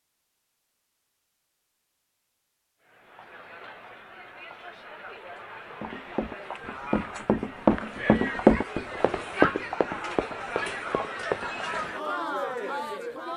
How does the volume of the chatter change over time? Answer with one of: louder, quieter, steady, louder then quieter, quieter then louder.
louder.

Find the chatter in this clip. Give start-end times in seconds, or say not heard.
2.8-13.3.